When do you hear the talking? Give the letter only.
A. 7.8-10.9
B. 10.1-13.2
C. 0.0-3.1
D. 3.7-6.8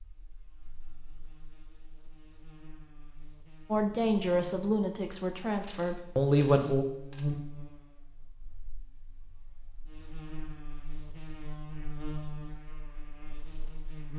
D.